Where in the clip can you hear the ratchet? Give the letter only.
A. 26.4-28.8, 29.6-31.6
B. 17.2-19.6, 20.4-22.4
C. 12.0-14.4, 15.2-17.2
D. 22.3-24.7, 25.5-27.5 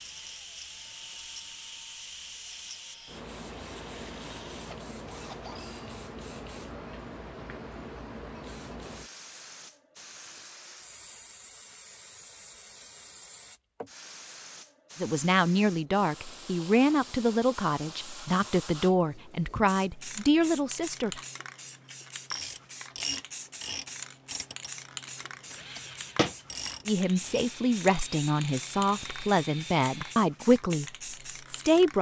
D.